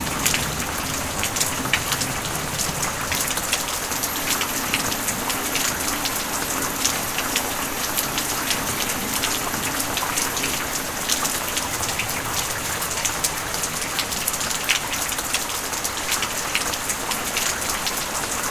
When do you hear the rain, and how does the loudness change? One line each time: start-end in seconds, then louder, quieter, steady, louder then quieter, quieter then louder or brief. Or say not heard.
0.0-18.4 steady.